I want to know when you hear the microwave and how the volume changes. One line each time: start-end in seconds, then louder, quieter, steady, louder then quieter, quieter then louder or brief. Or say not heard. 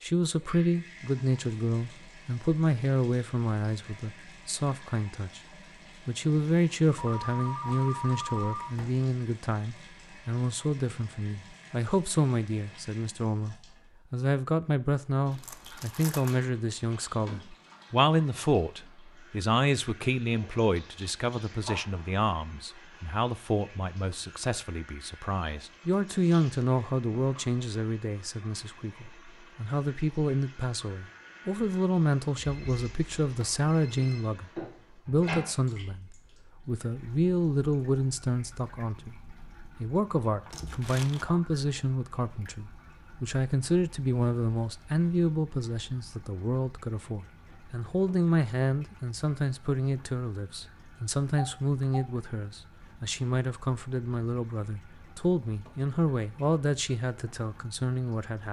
not heard.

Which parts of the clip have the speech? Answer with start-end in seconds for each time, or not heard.
0.0-5.4, 6.0-58.4.